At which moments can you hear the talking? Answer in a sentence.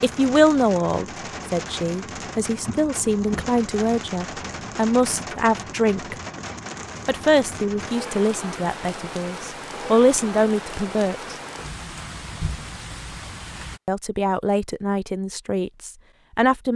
The talking can be heard from 0.0 to 6.2 s, from 7.0 to 11.3 s and from 13.8 to 16.7 s.